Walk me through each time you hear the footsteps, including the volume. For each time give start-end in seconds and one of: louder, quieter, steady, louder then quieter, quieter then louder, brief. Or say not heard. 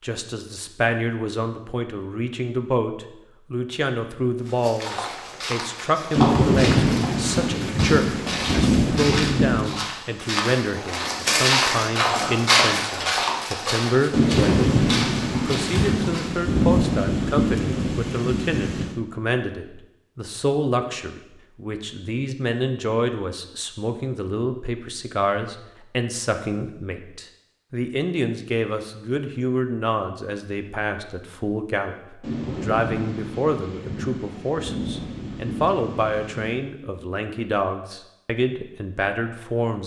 4.5-16.3 louder then quieter.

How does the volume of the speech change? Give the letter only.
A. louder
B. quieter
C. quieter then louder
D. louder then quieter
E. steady
E.